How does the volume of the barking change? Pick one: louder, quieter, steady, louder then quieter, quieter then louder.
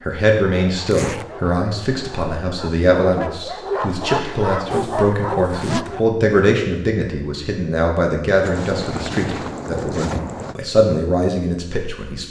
louder.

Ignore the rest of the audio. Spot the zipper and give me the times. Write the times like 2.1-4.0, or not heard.
0.8-1.2, 4.7-5.8, 8.4-10.6.